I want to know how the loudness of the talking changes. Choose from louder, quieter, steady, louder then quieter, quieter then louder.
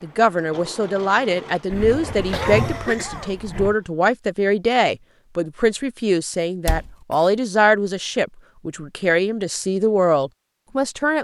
steady.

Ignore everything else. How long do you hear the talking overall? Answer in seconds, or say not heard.
11 s.